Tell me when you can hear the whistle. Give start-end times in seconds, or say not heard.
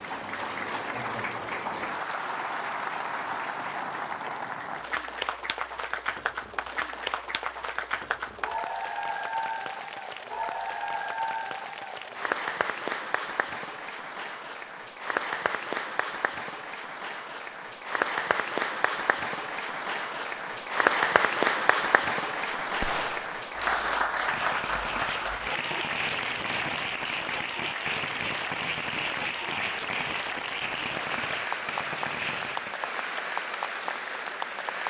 not heard.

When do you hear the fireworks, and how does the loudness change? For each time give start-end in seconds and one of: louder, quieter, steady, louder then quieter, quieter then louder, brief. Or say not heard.
22.6-32.8 steady.